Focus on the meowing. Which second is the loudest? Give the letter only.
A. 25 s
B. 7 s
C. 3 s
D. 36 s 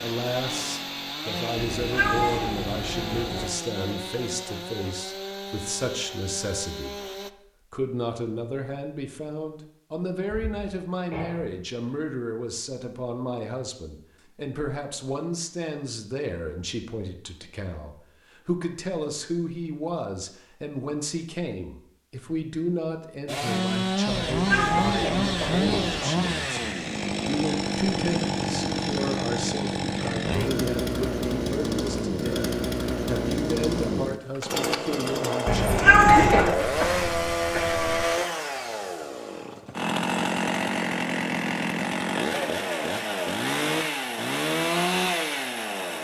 D.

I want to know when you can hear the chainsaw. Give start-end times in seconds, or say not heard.
0.0-7.3, 23.2-46.0.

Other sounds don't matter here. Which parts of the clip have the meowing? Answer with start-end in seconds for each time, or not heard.
1.6-3.5, 24.3-26.0, 35.5-36.5.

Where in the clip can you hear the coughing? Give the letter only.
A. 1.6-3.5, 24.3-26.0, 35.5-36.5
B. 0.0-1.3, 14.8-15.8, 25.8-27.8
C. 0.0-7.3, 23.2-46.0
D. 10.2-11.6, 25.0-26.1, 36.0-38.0
D.